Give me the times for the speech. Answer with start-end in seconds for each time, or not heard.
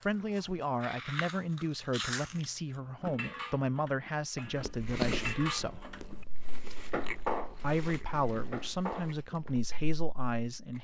0.1-5.8, 7.6-10.7.